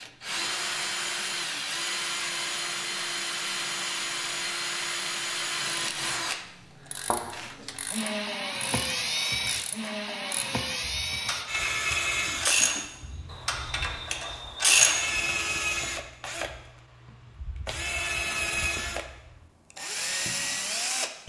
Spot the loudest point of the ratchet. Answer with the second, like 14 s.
15 s.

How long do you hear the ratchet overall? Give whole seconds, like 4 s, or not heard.
8 s.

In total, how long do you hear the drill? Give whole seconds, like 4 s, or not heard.
21 s.